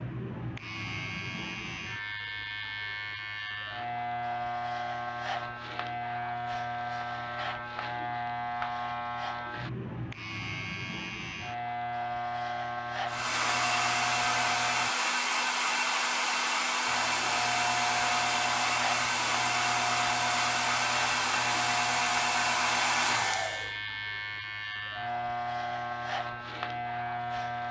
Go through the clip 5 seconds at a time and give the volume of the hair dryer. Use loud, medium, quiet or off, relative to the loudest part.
off, off, loud, loud, loud, off.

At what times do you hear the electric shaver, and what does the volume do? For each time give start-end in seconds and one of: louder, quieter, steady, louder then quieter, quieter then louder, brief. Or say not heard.
0.0-14.9 steady
16.9-27.6 steady.